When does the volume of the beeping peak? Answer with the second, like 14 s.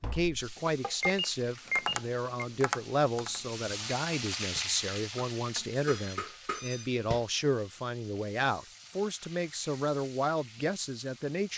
2 s.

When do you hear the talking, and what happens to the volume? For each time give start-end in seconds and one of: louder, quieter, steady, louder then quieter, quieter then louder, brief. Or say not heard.
0.0-11.5 steady.